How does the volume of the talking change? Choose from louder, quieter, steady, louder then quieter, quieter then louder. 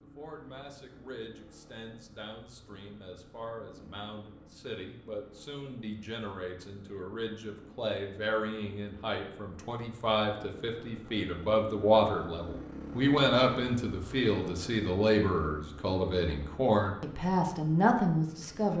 louder.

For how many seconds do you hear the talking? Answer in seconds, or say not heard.
19 s.